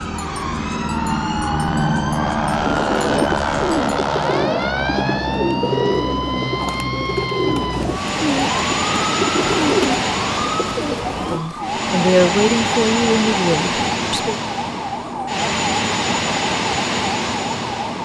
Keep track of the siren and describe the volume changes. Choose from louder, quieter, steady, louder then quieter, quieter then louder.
steady.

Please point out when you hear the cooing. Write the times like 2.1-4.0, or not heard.
2.6-11.4.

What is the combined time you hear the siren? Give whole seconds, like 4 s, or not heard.
18 s.